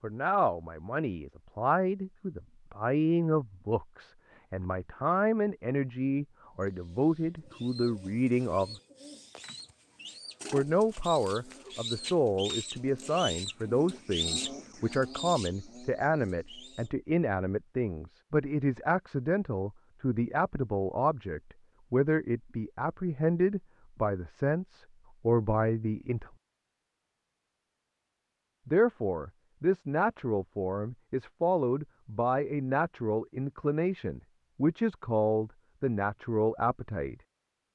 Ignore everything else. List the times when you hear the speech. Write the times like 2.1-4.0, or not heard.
0.0-8.8, 10.5-26.3, 28.6-37.1.